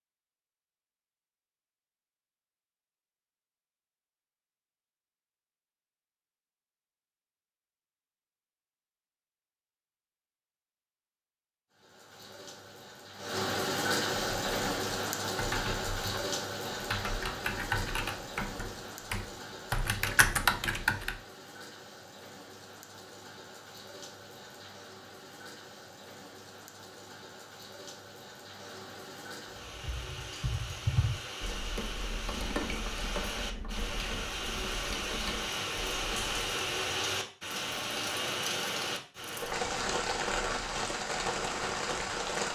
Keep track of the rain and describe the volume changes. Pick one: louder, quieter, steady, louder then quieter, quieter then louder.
quieter then louder.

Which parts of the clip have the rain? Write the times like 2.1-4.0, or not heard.
11.7-42.5.